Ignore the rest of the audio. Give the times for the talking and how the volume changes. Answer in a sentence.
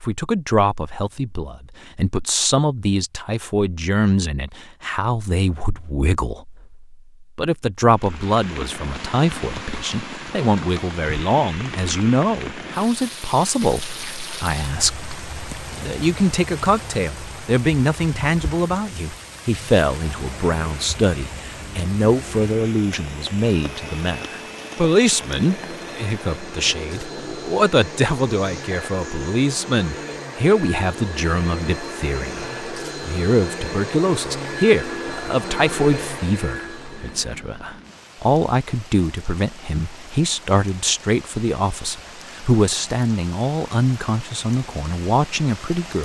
You can hear the talking from 0.0 to 45.9 s, at a steady volume.